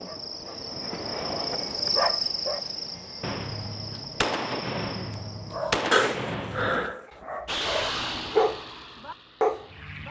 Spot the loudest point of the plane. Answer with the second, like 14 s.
8 s.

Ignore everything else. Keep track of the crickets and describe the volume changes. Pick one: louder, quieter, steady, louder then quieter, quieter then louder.
louder then quieter.